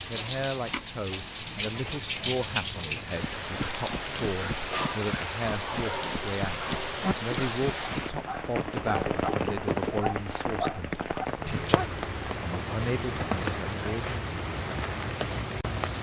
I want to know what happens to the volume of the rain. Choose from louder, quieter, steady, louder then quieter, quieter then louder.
steady.